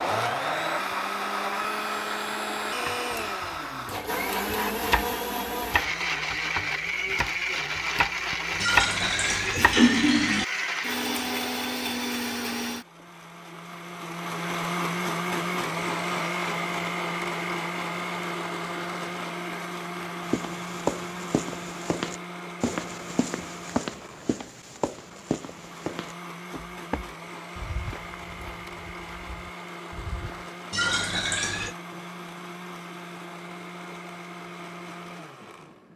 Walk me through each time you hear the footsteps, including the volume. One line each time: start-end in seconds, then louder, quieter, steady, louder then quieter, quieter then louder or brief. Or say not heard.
20.2-30.5 quieter.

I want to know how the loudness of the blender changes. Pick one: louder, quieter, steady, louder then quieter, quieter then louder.
quieter.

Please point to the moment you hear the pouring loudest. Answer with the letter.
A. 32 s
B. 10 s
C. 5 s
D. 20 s
B.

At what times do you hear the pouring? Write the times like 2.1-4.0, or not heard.
8.6-10.4, 30.7-31.8.